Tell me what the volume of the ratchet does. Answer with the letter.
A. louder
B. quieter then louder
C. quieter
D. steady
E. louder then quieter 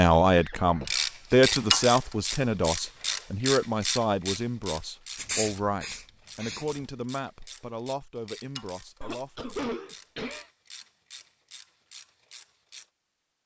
C.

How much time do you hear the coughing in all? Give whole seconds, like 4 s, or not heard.
3 s.